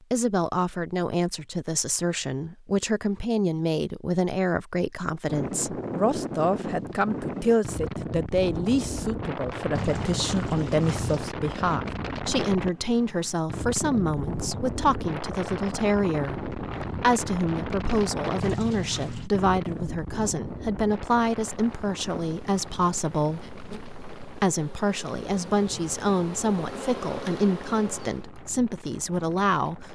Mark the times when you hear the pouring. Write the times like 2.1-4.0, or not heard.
9.8-11.3, 18.4-19.3.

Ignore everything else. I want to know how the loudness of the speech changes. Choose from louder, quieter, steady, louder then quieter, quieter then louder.
steady.